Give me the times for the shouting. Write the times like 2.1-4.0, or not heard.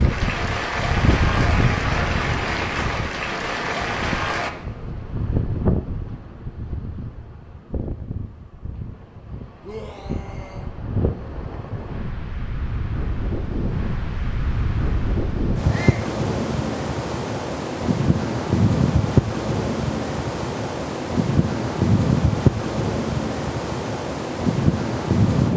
9.6-10.7, 15.7-16.1.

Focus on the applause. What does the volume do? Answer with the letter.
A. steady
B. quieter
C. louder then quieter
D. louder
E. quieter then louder
A.